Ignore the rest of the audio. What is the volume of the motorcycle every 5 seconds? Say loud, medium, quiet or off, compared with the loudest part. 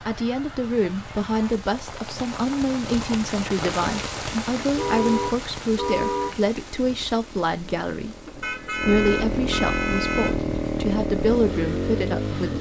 quiet, medium, loud.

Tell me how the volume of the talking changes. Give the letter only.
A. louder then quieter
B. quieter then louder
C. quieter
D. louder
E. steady
E.